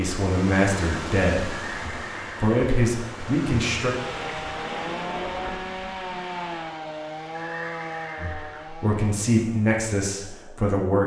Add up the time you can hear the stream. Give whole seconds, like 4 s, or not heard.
7 s.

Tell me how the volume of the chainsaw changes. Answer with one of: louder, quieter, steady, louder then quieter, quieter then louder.
quieter.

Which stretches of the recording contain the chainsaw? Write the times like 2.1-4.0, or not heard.
4.0-10.8.